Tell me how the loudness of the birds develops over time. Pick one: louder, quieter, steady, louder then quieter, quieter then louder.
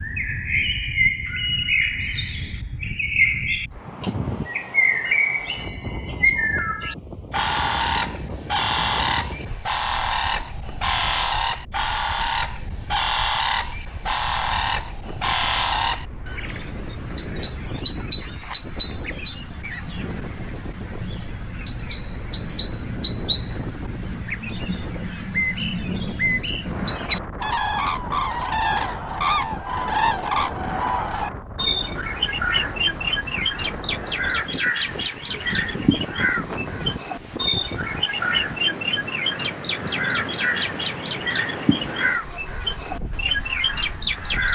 steady.